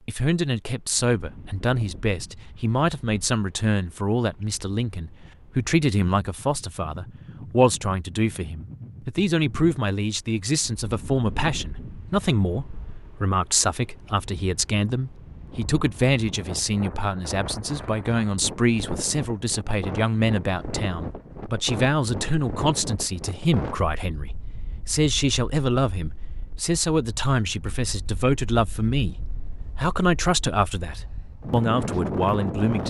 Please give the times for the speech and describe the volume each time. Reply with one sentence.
You can hear the speech from 0.1 to 32.8 s, at a steady volume.